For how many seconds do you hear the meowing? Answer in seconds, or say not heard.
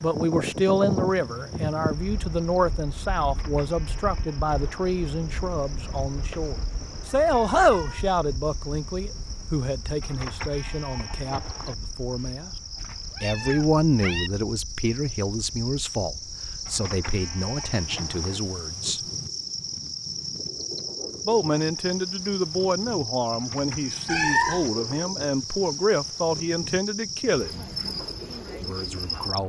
4 s.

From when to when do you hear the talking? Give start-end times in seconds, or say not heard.
0.0-12.5, 13.2-19.0, 21.2-27.6, 28.6-29.4.